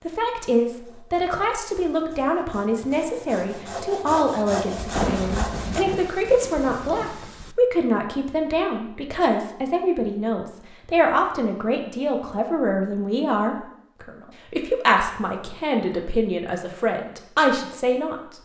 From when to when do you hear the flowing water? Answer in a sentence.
You can't hear the flowing water here.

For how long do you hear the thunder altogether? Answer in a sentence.
You can hear the thunder for 3 seconds altogether.